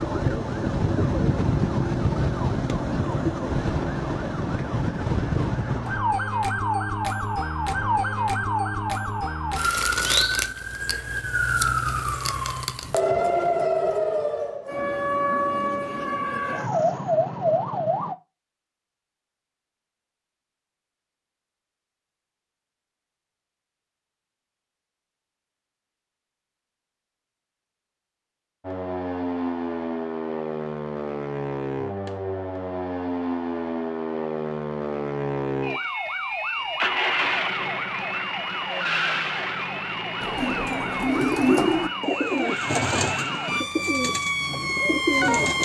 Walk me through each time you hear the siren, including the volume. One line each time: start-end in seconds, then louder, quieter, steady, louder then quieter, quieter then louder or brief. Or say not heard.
0.0-18.1 steady
28.6-45.6 steady.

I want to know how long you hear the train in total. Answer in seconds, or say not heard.
not heard.